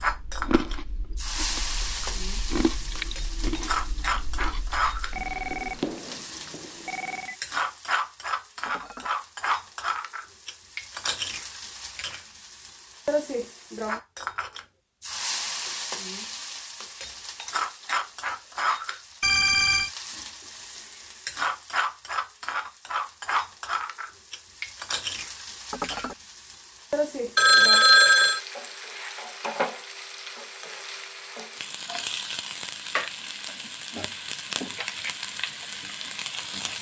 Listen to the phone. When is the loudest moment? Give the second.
28 s.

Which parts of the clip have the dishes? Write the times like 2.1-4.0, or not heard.
8.7-9.1, 25.7-26.1.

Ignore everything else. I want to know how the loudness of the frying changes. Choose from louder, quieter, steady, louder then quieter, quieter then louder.
steady.